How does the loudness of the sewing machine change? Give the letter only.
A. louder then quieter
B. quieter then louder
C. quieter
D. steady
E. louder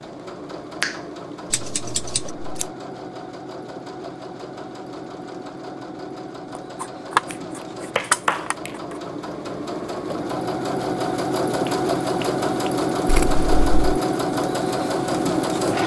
E.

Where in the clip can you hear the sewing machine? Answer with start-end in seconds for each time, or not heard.
0.0-15.8.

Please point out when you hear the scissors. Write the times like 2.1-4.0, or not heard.
1.5-2.7, 6.8-8.9, 13.1-13.8.